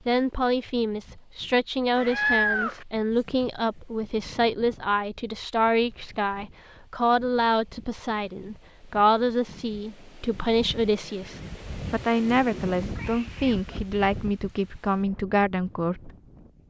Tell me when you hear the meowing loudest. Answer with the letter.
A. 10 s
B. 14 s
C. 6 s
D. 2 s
D.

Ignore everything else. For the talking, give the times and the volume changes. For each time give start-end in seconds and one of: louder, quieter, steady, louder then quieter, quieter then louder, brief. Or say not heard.
0.1-16.6 steady.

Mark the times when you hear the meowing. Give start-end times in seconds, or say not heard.
1.9-2.9, 12.9-13.6.